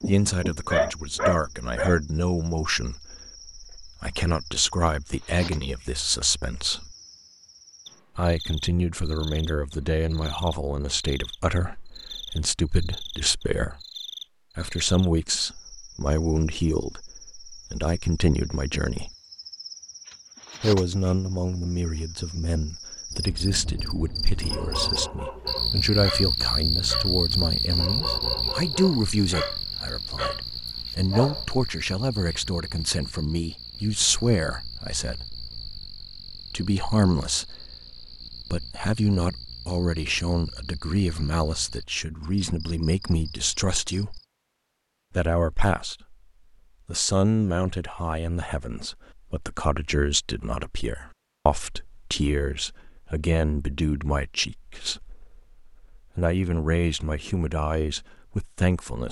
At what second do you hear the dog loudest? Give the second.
1 s.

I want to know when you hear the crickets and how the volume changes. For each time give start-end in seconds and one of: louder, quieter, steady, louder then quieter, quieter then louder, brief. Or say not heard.
0.0-44.2 louder then quieter.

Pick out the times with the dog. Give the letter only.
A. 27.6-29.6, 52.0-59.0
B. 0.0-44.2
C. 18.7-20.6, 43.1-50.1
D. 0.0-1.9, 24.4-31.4
D.